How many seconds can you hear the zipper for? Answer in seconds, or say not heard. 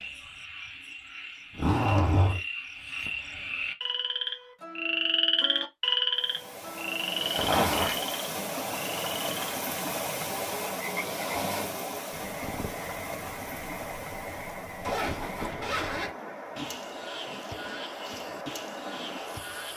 3 s.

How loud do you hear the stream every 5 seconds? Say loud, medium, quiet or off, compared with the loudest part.
off, loud, loud, medium.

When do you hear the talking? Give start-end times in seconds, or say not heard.
not heard.